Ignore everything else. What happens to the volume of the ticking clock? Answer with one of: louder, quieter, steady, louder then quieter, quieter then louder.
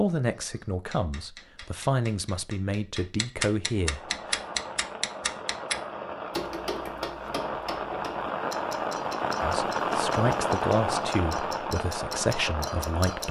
louder then quieter.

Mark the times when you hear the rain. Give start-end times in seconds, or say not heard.
3.7-13.2.